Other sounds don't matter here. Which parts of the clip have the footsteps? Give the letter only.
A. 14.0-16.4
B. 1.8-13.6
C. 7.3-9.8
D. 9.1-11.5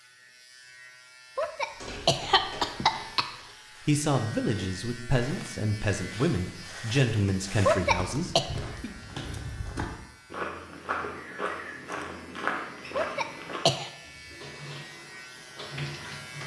B.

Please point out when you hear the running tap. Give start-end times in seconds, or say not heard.
14.0-16.4.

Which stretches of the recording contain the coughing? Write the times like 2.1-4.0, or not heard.
1.4-3.2, 7.7-8.4, 12.9-13.9.